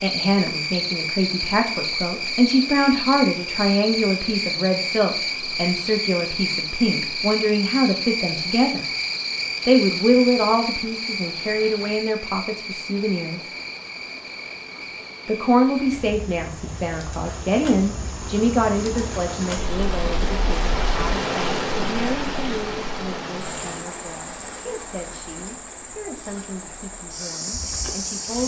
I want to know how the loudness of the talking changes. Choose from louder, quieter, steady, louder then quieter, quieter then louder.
quieter.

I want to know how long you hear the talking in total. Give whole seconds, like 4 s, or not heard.
26 s.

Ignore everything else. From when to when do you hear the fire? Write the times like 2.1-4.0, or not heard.
not heard.